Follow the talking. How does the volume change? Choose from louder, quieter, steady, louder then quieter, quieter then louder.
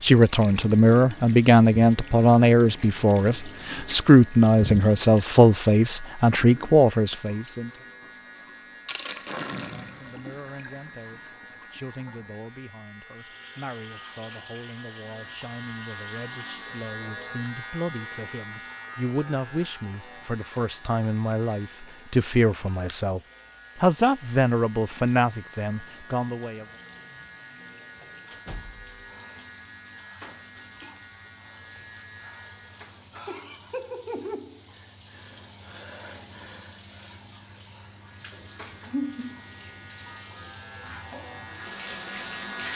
quieter then louder.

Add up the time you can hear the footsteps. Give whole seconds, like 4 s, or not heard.
not heard.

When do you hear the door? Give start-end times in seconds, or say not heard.
28.3-29.0.